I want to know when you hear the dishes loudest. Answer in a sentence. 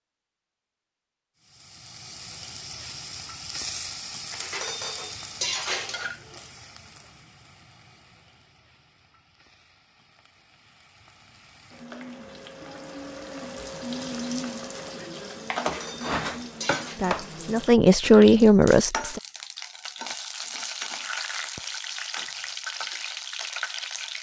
The volume of the dishes peaks at 6 seconds.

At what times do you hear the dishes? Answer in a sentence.
The dishes can be heard from 4.3 to 6.2 s and from 15.6 to 17.0 s.